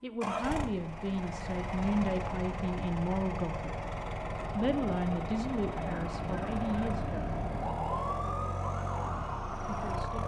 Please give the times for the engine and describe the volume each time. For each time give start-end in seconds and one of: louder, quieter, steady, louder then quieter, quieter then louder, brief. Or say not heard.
0.2-10.2 steady.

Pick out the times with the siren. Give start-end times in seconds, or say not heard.
5.7-10.2.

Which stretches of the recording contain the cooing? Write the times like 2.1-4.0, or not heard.
not heard.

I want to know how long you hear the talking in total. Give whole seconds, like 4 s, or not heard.
7 s.